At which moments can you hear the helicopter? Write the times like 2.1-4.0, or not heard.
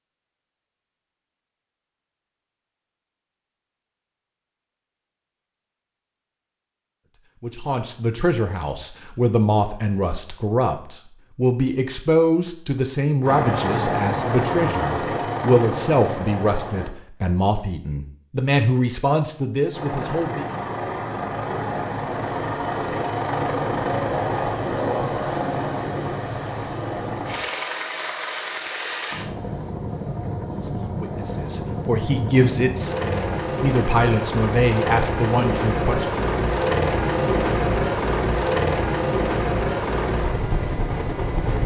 13.2-16.9, 19.7-41.6.